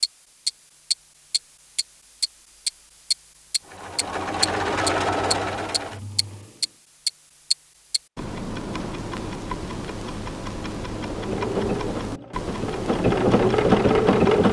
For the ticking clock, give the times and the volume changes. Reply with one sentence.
You can hear the ticking clock from 0.0 to 14.4 s, getting quieter.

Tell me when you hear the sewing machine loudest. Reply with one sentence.
The loudest moment of the sewing machine is at 14 seconds.